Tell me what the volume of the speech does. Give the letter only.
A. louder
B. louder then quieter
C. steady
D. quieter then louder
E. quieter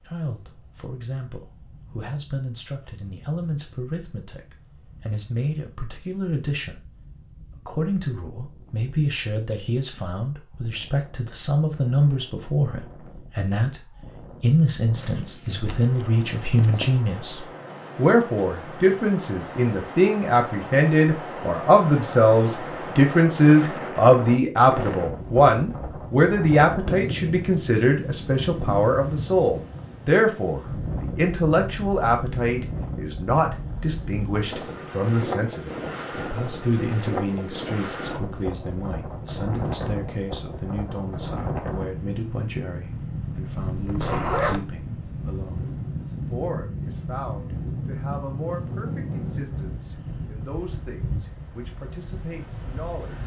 B.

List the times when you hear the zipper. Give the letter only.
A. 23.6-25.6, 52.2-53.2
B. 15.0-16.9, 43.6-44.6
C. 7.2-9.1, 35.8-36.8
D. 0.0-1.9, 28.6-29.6
B.